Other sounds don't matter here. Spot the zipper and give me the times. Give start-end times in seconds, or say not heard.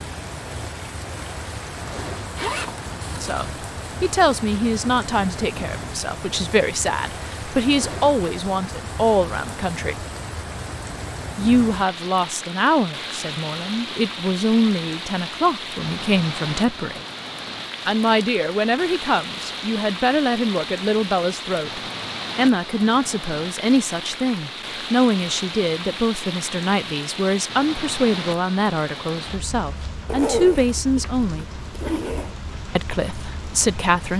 2.4-3.5, 30.1-32.4.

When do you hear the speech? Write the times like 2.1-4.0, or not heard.
3.2-10.1, 11.3-17.1, 17.9-31.4, 32.8-34.1.